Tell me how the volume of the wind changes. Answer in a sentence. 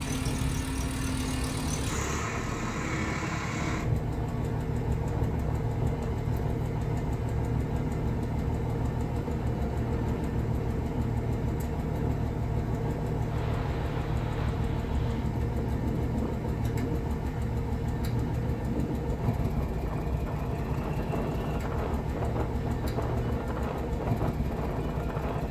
The volume of the wind stays about the same.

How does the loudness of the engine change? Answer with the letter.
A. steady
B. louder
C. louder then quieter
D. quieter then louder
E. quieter
A.